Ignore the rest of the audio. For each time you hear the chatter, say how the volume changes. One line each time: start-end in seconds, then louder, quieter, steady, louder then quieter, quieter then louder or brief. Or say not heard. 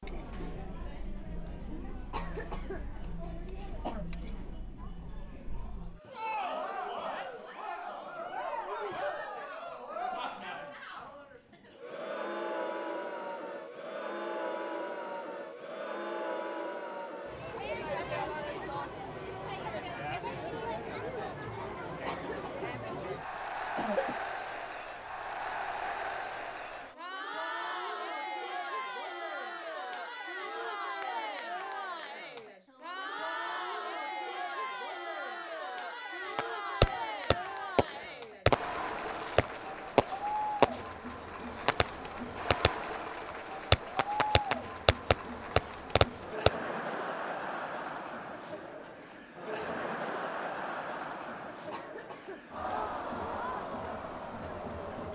0.0-55.0 steady.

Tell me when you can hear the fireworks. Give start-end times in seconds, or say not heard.
36.1-46.5.